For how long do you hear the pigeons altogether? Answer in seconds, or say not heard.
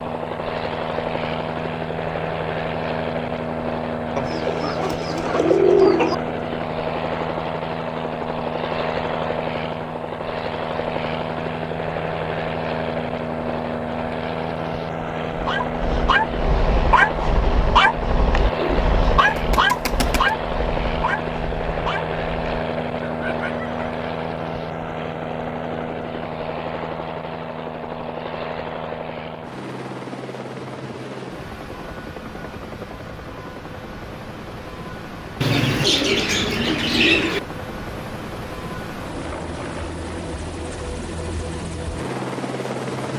6 s.